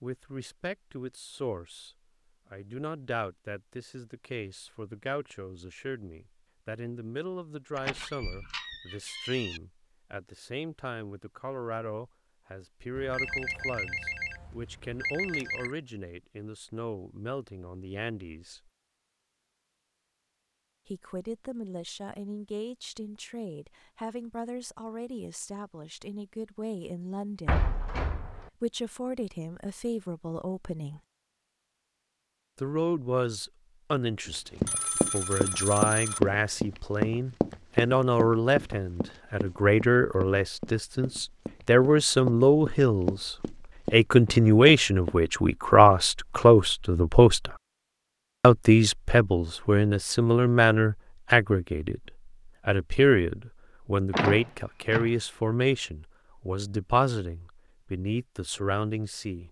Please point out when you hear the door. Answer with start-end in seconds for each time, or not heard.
7.8-9.6, 27.4-28.5, 54.1-55.1.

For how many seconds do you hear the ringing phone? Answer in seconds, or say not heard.
4 s.